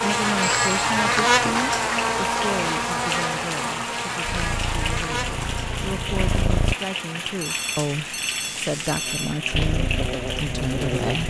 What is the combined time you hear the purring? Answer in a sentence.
The purring can be heard for 4 seconds in total.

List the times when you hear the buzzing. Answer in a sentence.
The buzzing can be heard from 0.0 to 11.2 s.